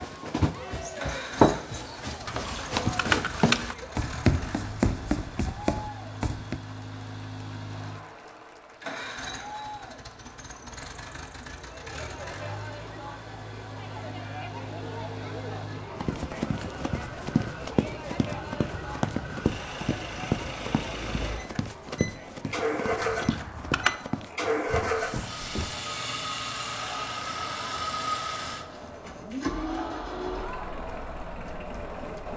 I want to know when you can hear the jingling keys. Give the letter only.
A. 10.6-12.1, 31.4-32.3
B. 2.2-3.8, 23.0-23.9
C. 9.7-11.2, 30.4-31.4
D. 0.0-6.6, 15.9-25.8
B.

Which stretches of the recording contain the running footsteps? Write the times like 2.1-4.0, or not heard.
0.0-6.6, 15.9-25.8.